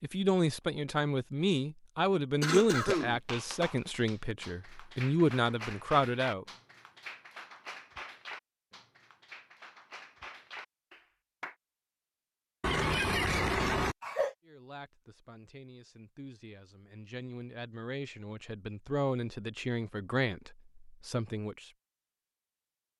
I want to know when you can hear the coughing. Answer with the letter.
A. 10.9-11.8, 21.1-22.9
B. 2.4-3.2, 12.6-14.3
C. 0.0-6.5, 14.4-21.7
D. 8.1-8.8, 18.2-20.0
B.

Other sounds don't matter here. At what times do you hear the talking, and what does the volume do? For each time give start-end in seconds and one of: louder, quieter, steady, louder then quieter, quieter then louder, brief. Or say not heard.
0.0-6.5 quieter then louder
14.4-21.7 louder.